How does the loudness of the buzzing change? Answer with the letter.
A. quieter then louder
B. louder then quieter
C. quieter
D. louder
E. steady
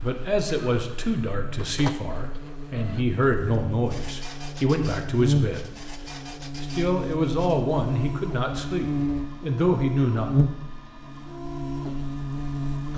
D.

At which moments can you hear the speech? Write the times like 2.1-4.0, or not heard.
0.0-6.0, 6.6-10.3.